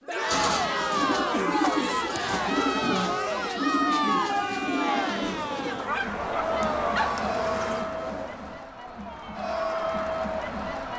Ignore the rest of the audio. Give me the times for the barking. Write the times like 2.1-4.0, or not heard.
5.8-7.2.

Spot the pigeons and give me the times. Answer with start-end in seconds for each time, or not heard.
0.2-6.0.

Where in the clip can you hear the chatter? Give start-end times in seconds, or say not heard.
0.1-10.9.